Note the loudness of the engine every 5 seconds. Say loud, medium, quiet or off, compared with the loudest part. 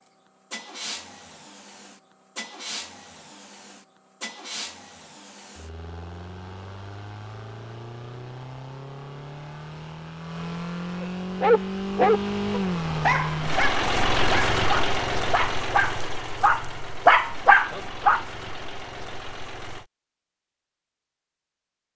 quiet, quiet, loud, medium, off.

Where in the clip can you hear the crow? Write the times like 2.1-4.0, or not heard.
not heard.